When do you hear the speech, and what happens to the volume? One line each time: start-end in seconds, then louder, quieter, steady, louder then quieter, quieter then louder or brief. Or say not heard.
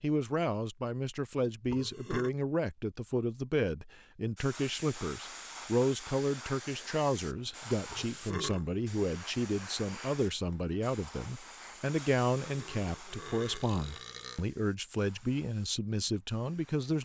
0.0-17.0 steady.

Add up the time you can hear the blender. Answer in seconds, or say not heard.
not heard.